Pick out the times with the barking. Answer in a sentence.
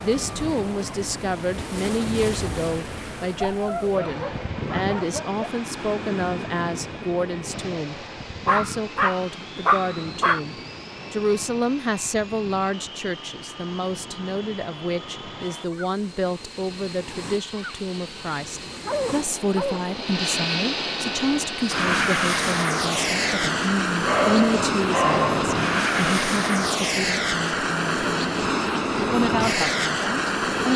You can hear the barking from 3.4 to 5.4 s, from 8.4 to 10.4 s, from 18.9 to 19.9 s and from 24.1 to 25.6 s.